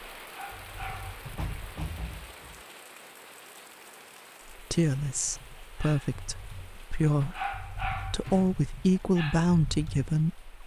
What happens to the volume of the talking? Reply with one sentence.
The loudness of the talking goes down, then up.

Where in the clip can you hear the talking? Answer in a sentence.
The talking can be heard from 4.5 to 10.6 s.